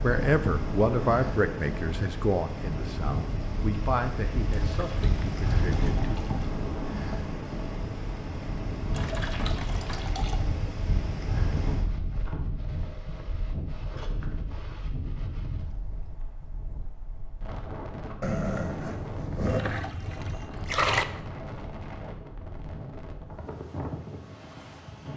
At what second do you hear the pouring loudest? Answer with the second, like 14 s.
21 s.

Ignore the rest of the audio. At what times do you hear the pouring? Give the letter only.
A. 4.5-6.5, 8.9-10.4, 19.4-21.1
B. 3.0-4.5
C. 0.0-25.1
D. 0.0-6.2
A.